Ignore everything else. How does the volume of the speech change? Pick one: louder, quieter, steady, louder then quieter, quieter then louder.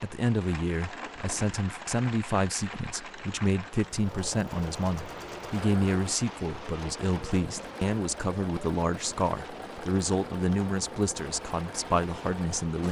steady.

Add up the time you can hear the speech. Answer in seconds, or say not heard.
13 s.